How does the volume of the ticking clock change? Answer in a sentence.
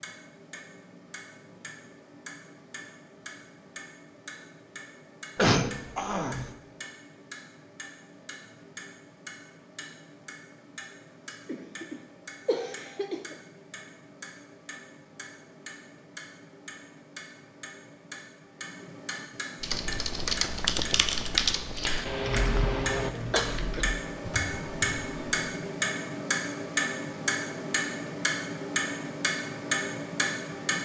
The loudness of the ticking clock goes up.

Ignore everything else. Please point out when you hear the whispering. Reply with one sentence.
The whispering can't be heard in this clip.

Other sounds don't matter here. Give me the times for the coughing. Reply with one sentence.
You can hear the coughing from 5.3 to 6.5 s, from 11.4 to 13.3 s and from 22.1 to 23.9 s.